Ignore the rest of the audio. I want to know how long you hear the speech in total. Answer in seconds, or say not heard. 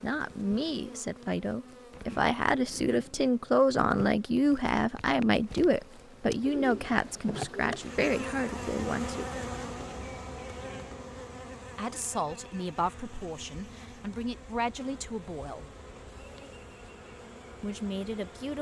14 s.